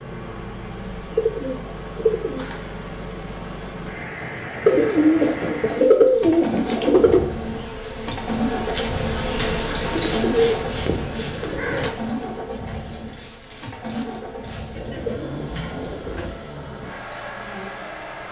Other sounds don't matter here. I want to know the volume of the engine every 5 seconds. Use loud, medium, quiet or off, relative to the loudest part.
medium, loud, loud, medium.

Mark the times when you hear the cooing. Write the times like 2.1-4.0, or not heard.
1.1-2.5, 4.7-7.2, 9.4-12.0, 14.8-16.4.